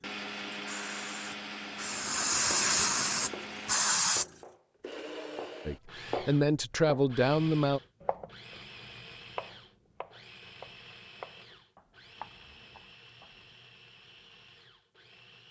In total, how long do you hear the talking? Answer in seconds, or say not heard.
2 s.